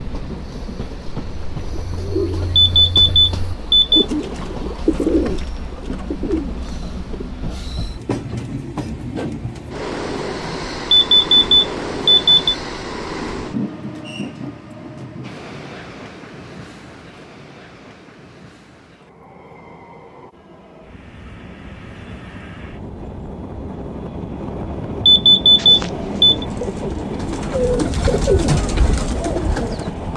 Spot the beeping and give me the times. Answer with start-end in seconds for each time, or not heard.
2.5-4.0, 10.9-12.6, 25.1-26.4.